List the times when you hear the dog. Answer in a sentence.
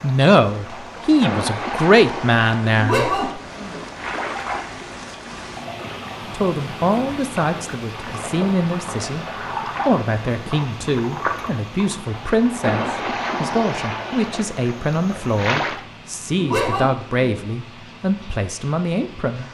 You can hear the dog from 2.8 to 3.9 s and from 16.4 to 17.4 s.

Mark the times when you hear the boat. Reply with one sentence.
You can hear the boat from 0.0 to 15.8 s.